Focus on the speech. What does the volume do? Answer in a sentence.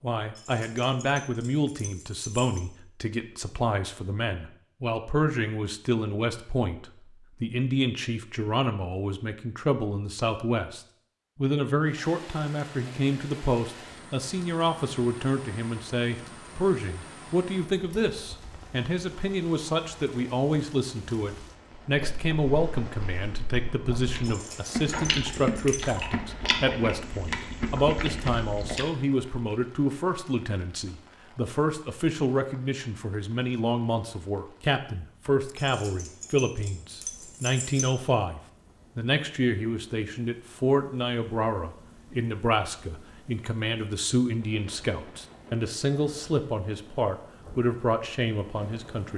The loudness of the speech stays about the same.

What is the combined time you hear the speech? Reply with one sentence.
You can hear the speech for 49 seconds altogether.